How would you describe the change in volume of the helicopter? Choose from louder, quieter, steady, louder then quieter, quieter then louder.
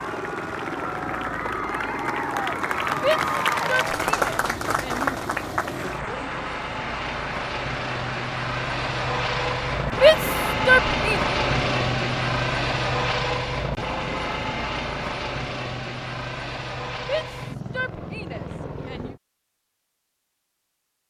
louder then quieter.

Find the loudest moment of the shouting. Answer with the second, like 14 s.
10 s.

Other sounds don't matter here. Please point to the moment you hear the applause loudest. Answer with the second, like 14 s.
4 s.